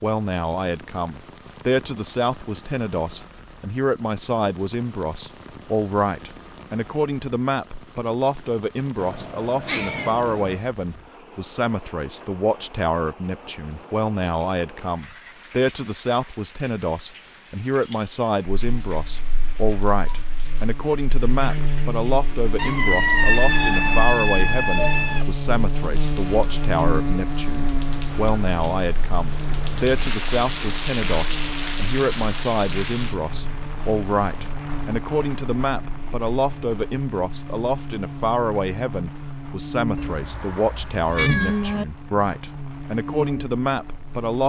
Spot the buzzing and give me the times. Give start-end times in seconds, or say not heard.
18.5-44.4.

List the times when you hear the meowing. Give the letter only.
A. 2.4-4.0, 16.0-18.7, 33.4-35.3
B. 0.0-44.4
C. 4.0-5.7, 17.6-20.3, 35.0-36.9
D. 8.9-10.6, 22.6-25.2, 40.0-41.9
D.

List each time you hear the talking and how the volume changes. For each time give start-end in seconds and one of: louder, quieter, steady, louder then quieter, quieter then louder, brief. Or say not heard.
0.0-44.4 steady.